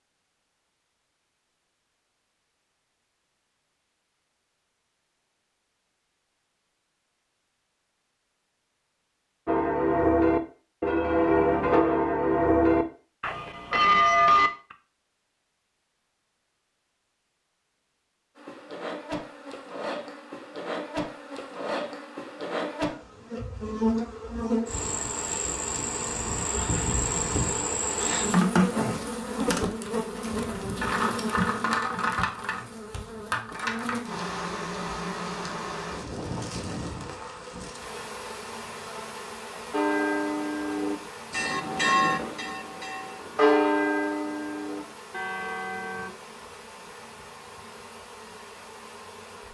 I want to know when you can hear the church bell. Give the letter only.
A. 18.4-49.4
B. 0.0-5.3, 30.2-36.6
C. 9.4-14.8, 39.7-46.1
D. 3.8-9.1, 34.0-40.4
C.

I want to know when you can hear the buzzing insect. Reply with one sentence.
You can hear the buzzing insect from 18.4 to 49.4 s.